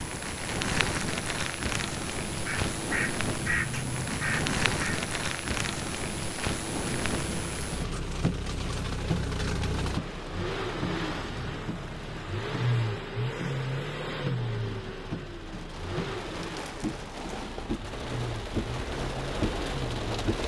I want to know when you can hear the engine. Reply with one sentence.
You can hear the engine from 6.8 to 20.2 s.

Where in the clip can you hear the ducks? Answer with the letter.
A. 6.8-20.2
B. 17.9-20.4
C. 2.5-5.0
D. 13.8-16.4
C.